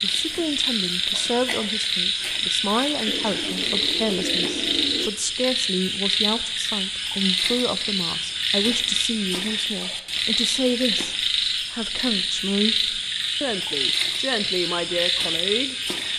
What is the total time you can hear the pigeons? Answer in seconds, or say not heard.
2 s.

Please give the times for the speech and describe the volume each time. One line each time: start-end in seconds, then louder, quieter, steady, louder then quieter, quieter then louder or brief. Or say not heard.
0.0-15.8 steady.